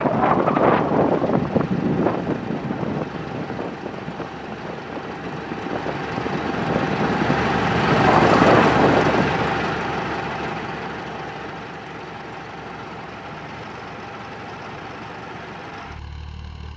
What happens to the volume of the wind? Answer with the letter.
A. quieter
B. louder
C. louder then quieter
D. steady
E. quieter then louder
E.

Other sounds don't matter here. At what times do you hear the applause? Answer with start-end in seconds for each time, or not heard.
not heard.